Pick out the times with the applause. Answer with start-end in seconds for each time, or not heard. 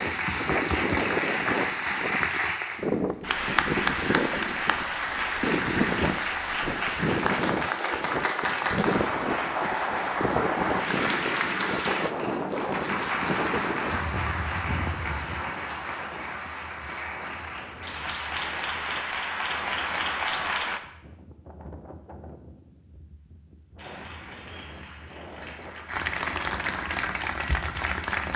0.0-20.8, 23.8-28.3.